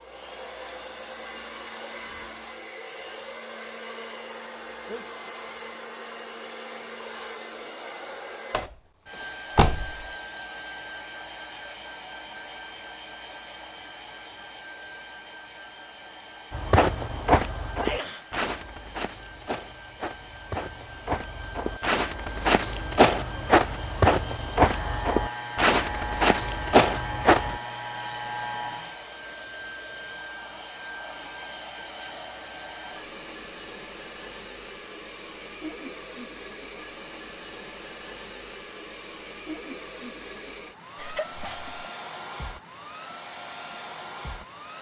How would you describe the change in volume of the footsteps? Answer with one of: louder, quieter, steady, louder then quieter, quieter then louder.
quieter then louder.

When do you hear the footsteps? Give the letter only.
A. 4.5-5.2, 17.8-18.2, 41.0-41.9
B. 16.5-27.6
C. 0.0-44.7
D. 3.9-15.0
B.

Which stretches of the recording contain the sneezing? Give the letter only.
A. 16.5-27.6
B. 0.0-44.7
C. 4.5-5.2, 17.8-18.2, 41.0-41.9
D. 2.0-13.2
C.